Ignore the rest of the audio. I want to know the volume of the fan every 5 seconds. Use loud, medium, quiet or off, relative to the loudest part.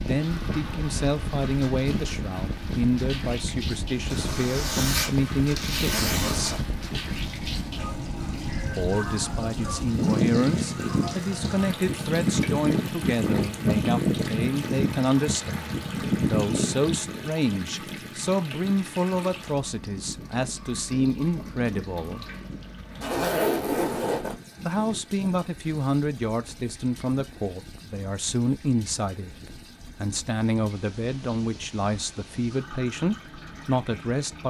medium, medium, loud, medium, quiet, quiet, quiet.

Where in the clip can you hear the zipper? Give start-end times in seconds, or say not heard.
4.1-6.6, 23.0-24.4.